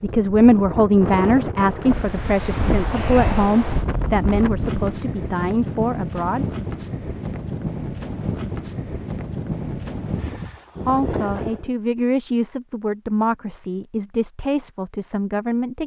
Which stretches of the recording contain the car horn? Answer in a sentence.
The car horn can't be heard in this clip.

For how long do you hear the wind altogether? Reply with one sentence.
You can hear the wind for 12 seconds altogether.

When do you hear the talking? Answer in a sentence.
The talking can be heard from 0.0 to 6.5 s and from 10.8 to 15.8 s.